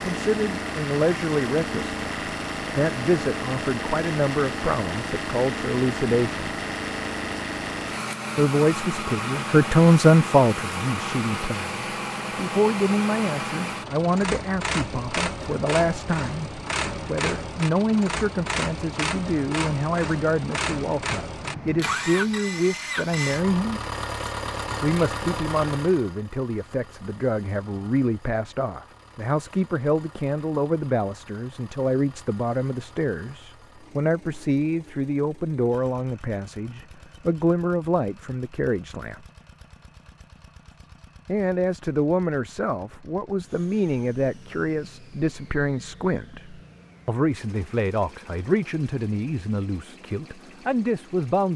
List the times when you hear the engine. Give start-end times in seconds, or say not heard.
0.0-51.5.